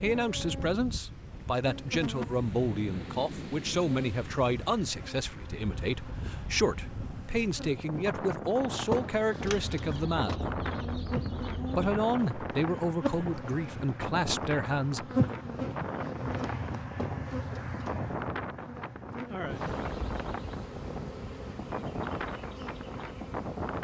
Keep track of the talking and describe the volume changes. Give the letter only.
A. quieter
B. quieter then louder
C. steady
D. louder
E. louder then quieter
C.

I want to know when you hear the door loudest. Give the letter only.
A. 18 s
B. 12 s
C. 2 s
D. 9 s
D.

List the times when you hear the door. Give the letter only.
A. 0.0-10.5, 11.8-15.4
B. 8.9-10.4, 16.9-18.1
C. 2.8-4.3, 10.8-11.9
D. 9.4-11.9
B.